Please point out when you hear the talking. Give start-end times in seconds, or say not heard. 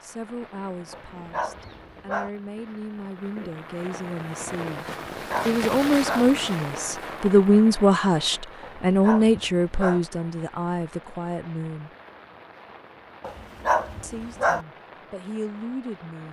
0.0-4.8, 5.5-11.9, 14.0-16.2.